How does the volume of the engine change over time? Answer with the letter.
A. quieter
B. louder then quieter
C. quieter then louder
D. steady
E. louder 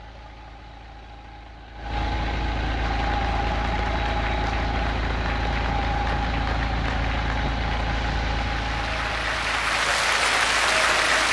B.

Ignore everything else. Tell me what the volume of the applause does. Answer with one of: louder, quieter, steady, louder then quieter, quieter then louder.
louder.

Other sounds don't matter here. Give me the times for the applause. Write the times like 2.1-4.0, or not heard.
2.8-11.2.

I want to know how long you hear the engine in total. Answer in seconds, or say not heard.
11 s.